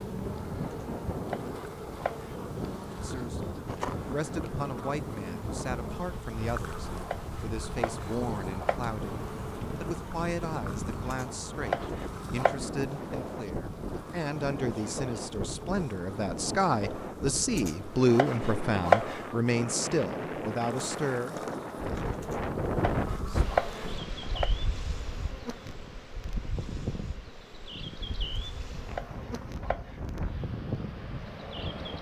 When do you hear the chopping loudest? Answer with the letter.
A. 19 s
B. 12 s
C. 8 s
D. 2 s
A.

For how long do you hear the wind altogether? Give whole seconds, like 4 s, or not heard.
32 s.